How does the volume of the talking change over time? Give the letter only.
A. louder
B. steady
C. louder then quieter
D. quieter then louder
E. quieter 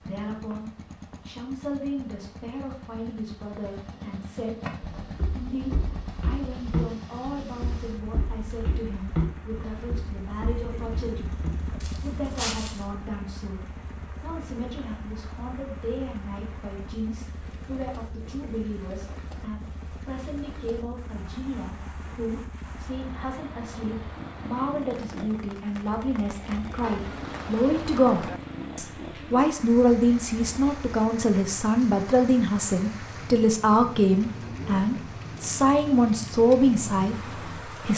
A.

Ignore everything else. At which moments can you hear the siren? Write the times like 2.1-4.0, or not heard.
not heard.